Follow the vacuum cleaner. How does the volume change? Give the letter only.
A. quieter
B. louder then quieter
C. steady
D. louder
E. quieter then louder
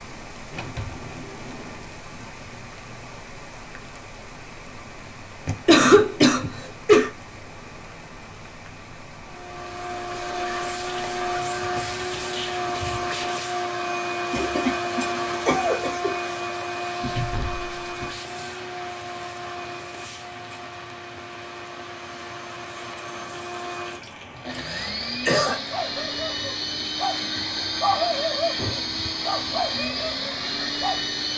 E.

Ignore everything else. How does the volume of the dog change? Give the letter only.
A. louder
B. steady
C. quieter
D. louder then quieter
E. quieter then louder
D.